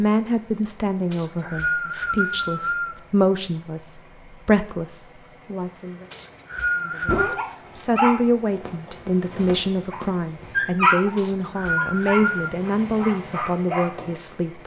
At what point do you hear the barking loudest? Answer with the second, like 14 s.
11 s.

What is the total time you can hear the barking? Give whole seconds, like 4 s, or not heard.
7 s.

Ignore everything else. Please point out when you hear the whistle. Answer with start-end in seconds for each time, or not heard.
1.1-3.0, 6.1-7.5, 11.2-12.5.